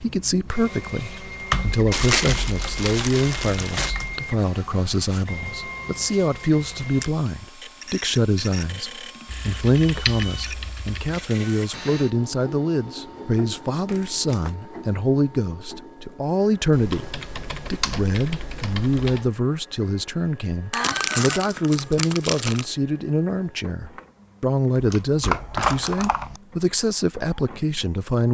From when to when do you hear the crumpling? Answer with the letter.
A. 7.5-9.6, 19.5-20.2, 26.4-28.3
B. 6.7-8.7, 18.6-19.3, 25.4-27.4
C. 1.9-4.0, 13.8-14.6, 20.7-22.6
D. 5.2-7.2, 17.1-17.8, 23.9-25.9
C.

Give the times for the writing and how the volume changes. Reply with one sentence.
You can't hear the writing here.